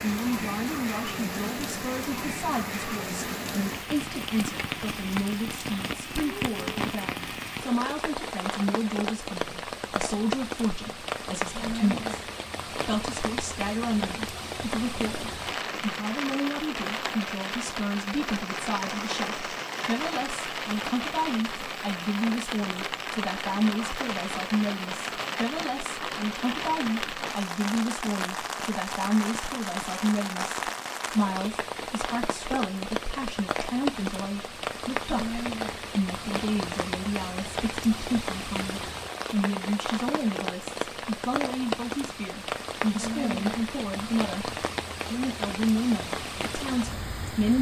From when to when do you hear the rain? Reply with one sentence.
You can hear the rain from 0.0 to 47.5 s.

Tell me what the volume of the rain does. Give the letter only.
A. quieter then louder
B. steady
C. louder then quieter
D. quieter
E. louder
B.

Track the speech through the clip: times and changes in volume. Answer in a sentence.
The speech can be heard from 0.0 to 47.5 s, at a steady volume.